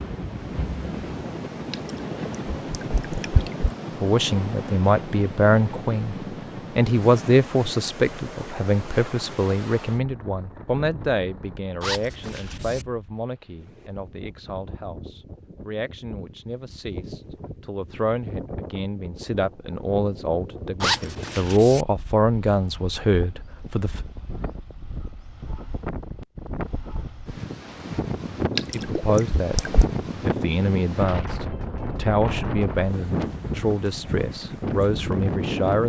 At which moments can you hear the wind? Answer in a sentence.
The wind can be heard from 0.0 to 35.8 s.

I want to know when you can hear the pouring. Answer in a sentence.
You can hear the pouring from 1.7 to 3.7 s and from 28.6 to 29.9 s.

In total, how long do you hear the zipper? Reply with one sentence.
You can hear the zipper for 2 seconds altogether.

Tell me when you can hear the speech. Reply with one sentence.
The speech can be heard from 4.0 to 24.0 s and from 28.7 to 35.8 s.